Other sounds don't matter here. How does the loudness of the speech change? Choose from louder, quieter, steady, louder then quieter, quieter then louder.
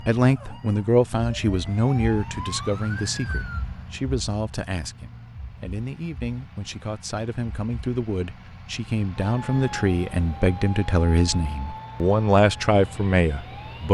quieter then louder.